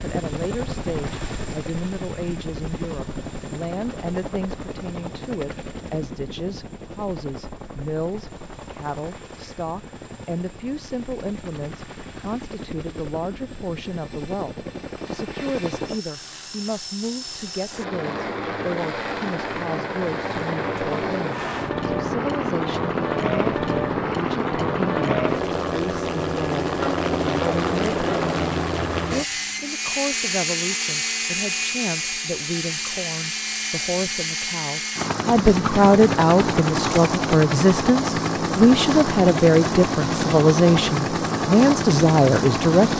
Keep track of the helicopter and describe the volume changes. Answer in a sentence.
The volume of the helicopter goes up.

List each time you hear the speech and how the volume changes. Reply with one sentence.
You can hear the speech from 0.0 to 42.9 s, getting louder.